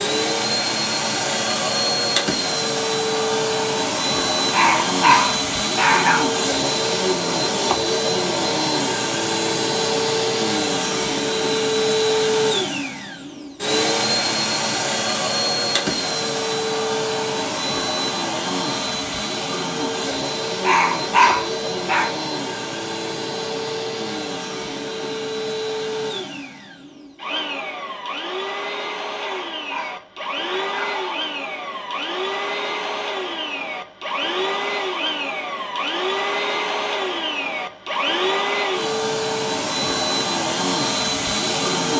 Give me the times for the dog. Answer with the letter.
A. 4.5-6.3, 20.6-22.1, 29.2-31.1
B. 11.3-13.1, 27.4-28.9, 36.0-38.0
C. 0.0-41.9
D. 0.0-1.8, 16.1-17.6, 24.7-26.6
A.